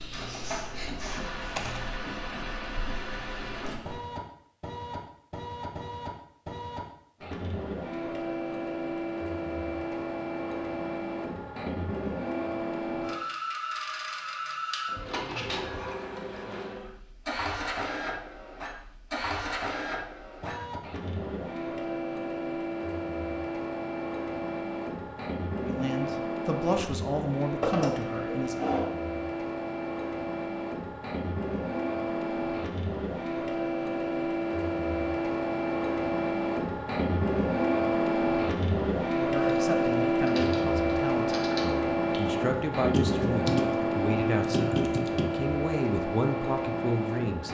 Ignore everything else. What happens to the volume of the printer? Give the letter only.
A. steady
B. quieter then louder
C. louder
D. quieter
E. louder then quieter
C.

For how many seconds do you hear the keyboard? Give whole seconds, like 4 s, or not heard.
8 s.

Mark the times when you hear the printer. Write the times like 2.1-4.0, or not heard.
0.0-47.4.